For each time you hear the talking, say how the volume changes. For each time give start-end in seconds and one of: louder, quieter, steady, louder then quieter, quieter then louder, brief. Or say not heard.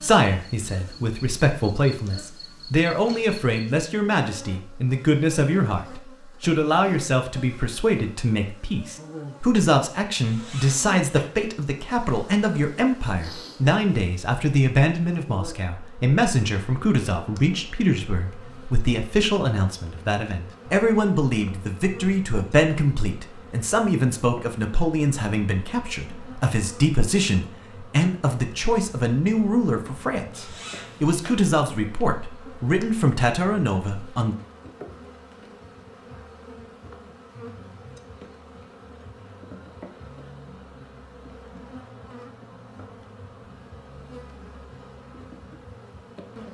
0.0-34.4 steady.